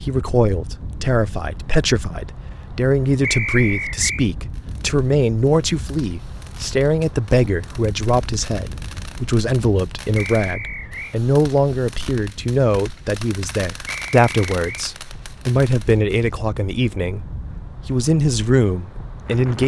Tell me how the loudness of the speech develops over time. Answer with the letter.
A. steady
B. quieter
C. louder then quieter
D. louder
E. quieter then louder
A.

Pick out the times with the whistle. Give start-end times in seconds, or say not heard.
3.2-4.2, 10.2-11.2, 13.8-14.8.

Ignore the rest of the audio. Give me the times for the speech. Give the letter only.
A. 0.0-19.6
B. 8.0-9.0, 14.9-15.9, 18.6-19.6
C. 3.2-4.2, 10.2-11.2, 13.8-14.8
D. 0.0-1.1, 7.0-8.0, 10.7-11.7
A.